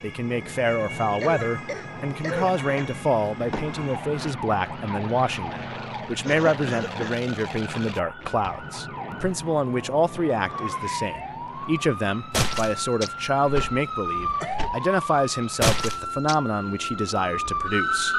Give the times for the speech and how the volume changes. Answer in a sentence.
The speech can be heard from 0.0 to 18.1 s, at a steady volume.